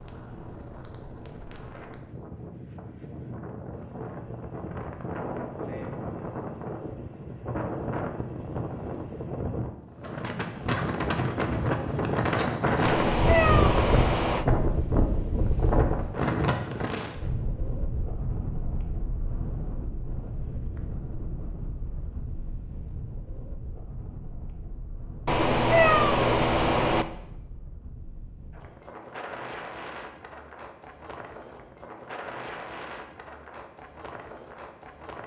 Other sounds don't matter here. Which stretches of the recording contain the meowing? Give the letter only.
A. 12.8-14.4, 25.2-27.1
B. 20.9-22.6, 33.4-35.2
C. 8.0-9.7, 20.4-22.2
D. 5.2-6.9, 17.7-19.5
A.